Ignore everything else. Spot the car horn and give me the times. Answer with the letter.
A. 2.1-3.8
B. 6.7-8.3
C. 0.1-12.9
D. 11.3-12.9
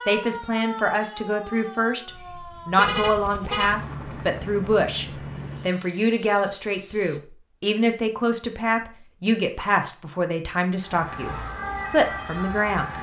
A.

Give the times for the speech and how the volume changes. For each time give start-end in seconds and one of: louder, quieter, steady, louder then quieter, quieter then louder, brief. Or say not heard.
0.1-12.9 steady.